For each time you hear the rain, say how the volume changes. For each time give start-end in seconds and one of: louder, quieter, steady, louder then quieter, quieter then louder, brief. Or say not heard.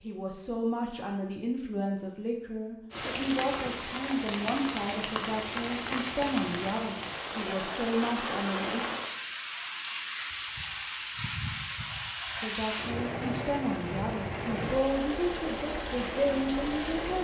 2.9-17.1 steady.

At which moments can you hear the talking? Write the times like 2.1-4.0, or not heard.
0.0-8.8, 12.4-17.1.